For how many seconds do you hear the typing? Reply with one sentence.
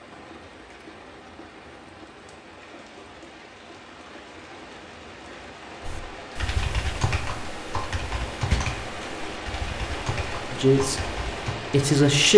The typing can be heard for 6 seconds in total.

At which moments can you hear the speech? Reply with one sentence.
The speech can be heard from 10.5 to 11.0 s and from 11.7 to 12.3 s.